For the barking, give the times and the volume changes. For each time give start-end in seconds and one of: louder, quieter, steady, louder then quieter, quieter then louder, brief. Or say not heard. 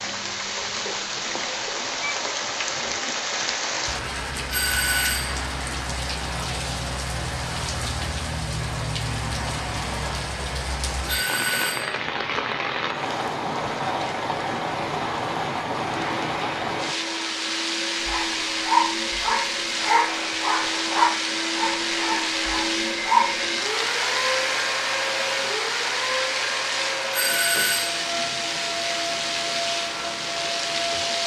18.1-23.4 quieter.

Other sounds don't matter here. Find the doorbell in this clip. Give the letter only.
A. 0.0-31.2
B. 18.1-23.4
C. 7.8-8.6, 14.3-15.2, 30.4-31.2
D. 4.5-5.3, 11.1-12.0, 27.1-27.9
D.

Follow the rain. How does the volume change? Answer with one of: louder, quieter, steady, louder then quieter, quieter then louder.
steady.